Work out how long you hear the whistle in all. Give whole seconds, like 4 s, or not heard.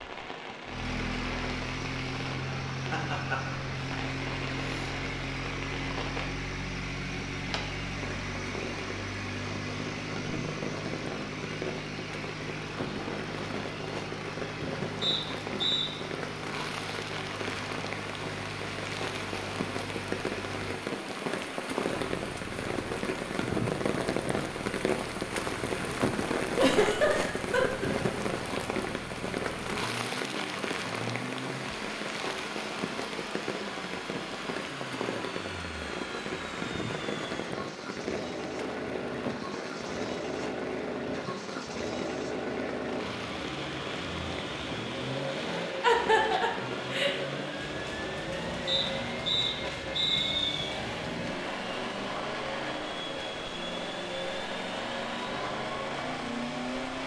3 s.